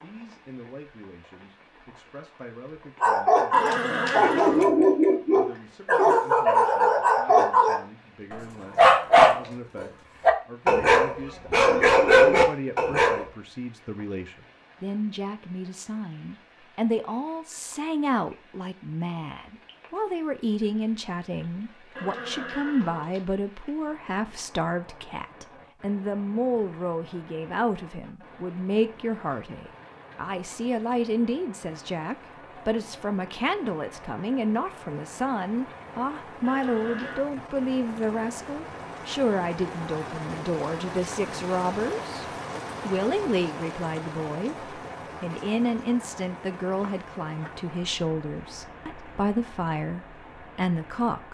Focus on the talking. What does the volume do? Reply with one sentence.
The loudness of the talking goes up.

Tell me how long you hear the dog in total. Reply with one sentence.
You can hear the dog for 10 seconds altogether.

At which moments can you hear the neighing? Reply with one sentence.
You can hear the neighing from 3.5 to 4.7 s, from 21.9 to 23.2 s and from 36.4 to 37.2 s.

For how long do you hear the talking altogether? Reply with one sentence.
You can hear the talking for 51 seconds altogether.